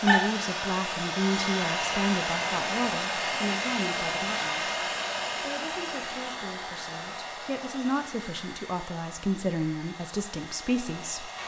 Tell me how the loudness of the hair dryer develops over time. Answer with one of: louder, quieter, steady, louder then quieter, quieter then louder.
quieter.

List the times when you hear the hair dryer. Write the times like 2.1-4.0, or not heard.
0.0-11.4.